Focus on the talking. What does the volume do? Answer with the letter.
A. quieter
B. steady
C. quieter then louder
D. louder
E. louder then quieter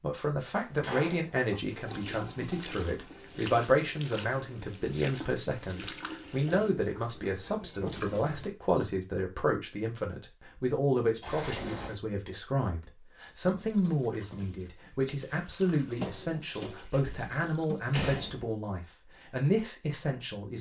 B.